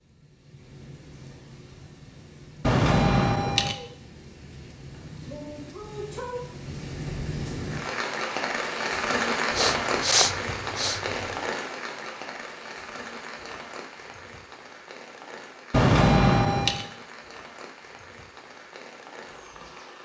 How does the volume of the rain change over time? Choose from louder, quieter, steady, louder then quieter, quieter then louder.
louder then quieter.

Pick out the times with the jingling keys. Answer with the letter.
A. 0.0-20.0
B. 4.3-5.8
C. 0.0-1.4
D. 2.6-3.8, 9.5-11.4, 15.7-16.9
D.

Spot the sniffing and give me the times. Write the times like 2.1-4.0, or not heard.
9.6-11.0.